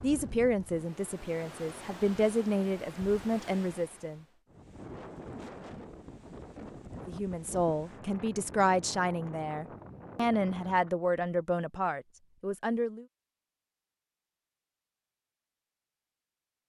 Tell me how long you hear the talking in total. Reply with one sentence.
You can hear the talking for 10 seconds altogether.